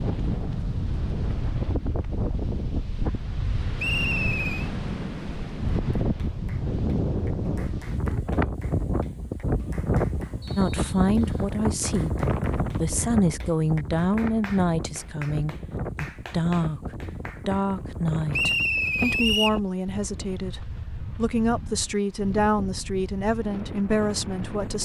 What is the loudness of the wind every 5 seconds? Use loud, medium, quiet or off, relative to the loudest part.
loud, loud, loud, medium, medium.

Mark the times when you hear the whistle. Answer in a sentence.
The whistle can be heard from 3.8 to 4.7 s, from 10.4 to 11.5 s and from 18.3 to 19.6 s.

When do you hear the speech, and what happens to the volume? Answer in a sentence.
The speech can be heard from 10.6 to 24.7 s, at a steady volume.